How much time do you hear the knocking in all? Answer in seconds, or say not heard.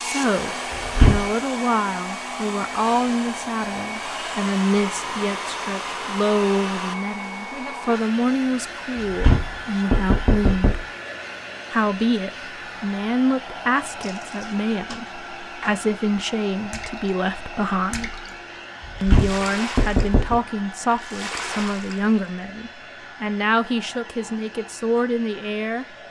4 s.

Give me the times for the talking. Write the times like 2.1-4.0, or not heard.
0.0-10.8, 11.7-18.1, 19.0-26.0.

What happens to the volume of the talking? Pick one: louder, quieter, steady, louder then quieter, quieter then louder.
steady.